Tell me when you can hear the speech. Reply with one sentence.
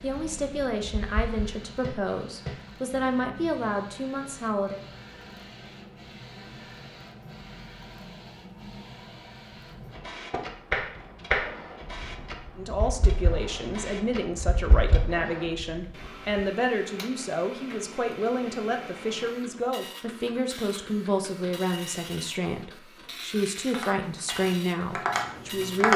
The speech can be heard from 0.0 to 4.8 s and from 12.6 to 25.9 s.